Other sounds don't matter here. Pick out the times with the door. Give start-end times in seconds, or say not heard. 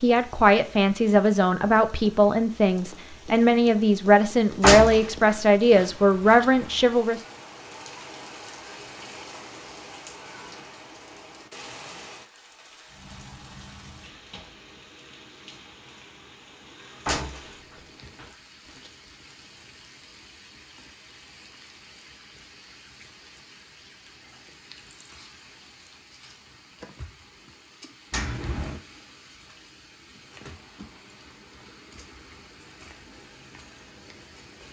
4.6-6.5, 17.1-18.2, 28.1-28.8.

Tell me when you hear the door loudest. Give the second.
5 s.